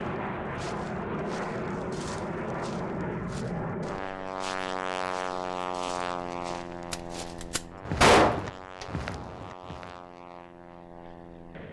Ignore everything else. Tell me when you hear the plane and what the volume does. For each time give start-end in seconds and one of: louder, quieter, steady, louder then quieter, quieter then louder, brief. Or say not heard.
0.0-11.6 quieter.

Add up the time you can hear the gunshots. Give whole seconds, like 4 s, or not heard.
2 s.